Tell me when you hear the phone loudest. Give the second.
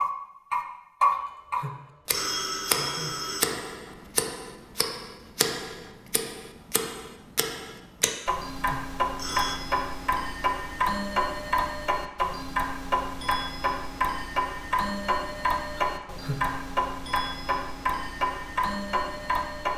2 s.